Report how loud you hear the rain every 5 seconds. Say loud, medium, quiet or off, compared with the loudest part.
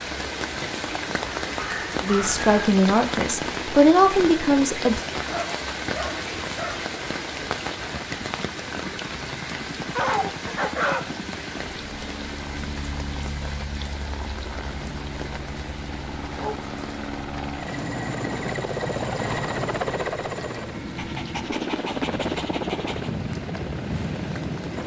loud, loud, medium, medium, quiet.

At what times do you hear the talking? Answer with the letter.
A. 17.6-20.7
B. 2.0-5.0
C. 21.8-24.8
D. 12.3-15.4
B.